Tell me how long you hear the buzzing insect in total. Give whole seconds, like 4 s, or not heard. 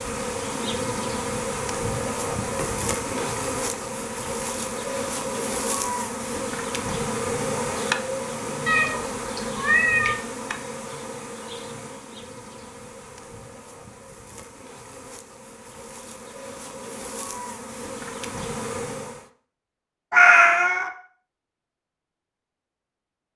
19 s.